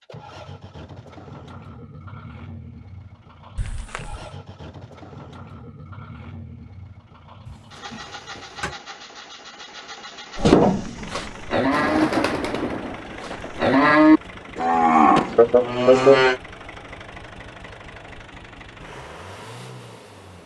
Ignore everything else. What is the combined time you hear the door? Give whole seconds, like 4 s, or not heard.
3 s.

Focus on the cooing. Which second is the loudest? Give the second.
12 s.